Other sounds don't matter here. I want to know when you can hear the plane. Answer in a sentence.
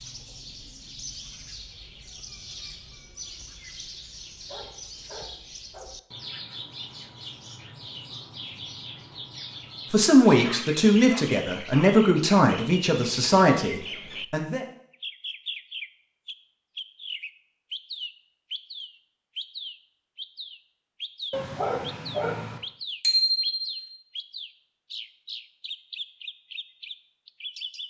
You can't hear the plane here.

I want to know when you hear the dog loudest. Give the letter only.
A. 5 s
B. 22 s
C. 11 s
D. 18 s
B.